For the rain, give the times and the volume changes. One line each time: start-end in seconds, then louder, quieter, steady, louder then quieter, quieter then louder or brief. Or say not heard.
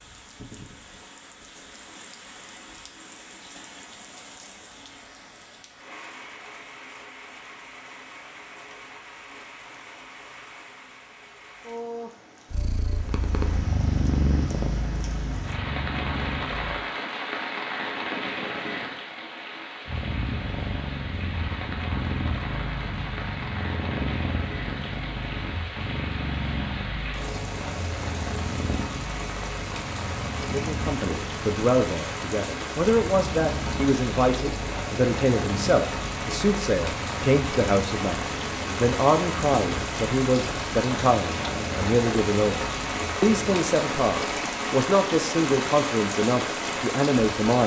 0.0-47.6 louder.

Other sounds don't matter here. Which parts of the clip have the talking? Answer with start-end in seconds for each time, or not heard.
30.5-47.6.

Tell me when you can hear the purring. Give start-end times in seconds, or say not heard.
12.5-16.8, 19.9-43.6.